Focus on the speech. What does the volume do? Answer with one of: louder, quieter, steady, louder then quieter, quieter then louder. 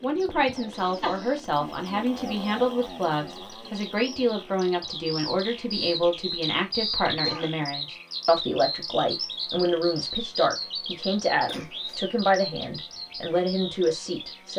steady.